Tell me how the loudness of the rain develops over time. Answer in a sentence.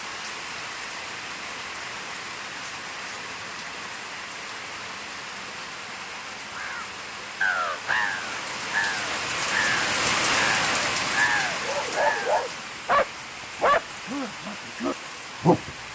The loudness of the rain goes up, then down.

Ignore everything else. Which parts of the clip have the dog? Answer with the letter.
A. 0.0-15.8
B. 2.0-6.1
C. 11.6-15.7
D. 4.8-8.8
C.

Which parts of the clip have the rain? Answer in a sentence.
The rain can be heard from 0.0 to 15.8 s.